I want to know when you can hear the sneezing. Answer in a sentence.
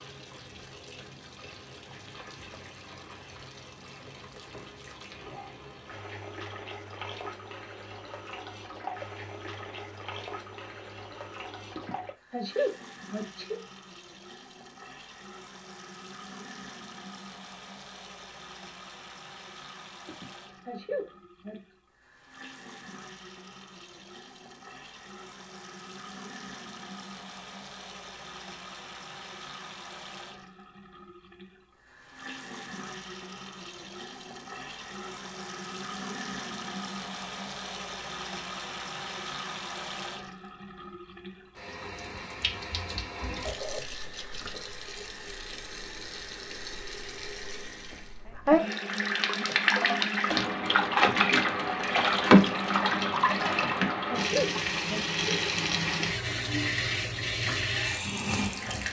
You can hear the sneezing from 11.8 to 13.6 s, from 20.1 to 21.8 s and from 53.5 to 55.1 s.